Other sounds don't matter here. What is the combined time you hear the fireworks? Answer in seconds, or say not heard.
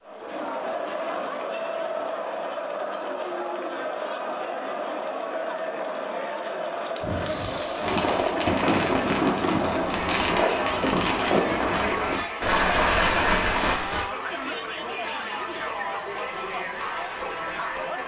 6 s.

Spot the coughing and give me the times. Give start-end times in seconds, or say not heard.
7.0-8.4.